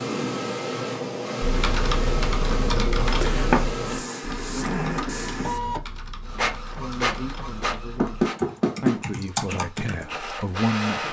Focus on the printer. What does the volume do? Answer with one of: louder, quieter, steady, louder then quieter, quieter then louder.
quieter.